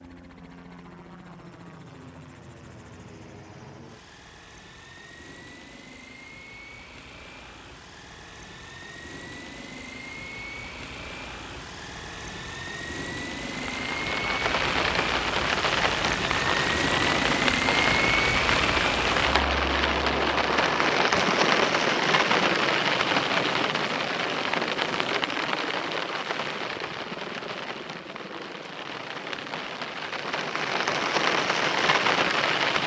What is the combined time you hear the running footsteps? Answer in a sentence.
The running footsteps can't be heard in this clip.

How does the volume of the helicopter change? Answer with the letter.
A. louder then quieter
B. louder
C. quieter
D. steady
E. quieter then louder
A.